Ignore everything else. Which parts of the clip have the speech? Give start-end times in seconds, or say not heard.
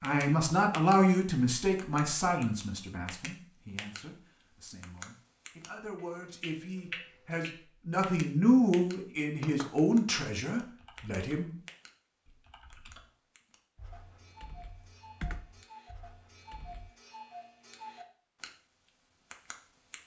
0.0-11.5.